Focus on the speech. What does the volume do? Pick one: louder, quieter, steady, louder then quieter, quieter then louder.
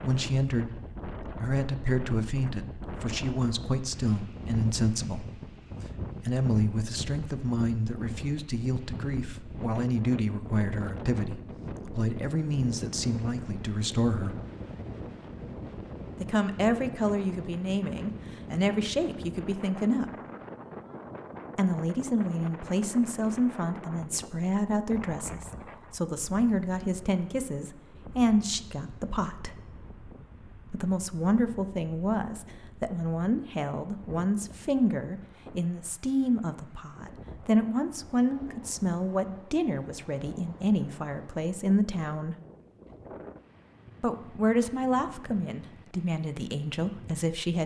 steady.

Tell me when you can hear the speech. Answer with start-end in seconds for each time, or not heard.
0.0-14.3, 16.2-20.1, 21.6-29.6, 30.7-42.4, 44.0-47.6.